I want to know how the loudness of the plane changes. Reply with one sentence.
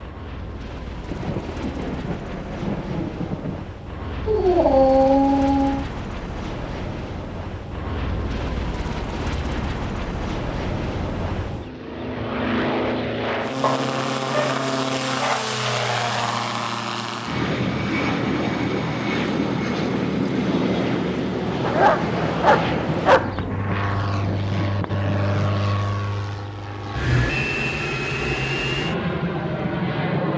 The loudness of the plane goes up.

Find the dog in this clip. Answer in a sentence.
You can hear the dog from 4.2 to 5.8 s, from 13.6 to 15.4 s and from 21.6 to 23.4 s.